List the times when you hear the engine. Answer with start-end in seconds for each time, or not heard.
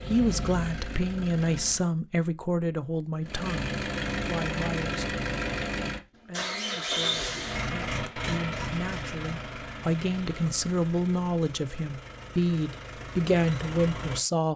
0.0-1.9, 3.2-14.5.